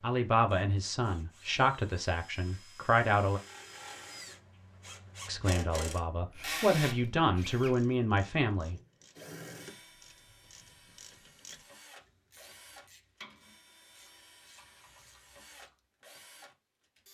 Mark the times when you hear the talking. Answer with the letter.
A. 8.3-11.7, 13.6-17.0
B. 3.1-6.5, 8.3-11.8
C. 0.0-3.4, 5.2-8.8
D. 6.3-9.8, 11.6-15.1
C.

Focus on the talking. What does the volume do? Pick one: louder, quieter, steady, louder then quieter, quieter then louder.
steady.